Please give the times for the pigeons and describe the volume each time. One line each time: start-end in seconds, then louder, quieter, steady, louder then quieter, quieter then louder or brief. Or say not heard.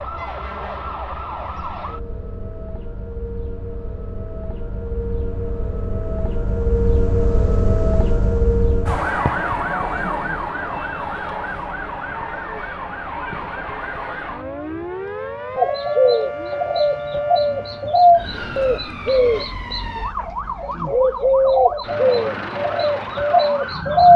15.6-24.1 steady.